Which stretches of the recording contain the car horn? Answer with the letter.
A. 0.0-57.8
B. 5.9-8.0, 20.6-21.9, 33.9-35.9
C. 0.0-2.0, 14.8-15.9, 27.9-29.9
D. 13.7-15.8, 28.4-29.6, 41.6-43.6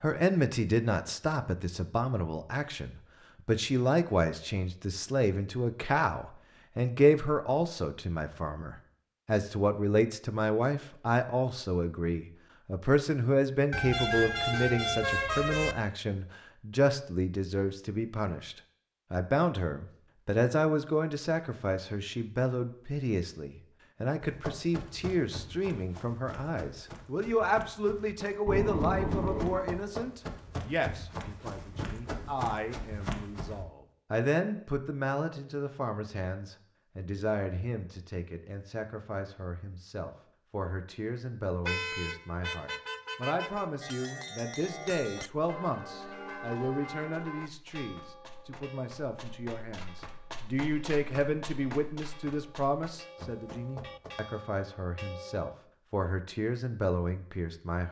D.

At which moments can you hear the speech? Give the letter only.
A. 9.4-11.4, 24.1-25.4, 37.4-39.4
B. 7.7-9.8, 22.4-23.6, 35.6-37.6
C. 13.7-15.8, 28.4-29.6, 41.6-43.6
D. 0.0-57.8
D.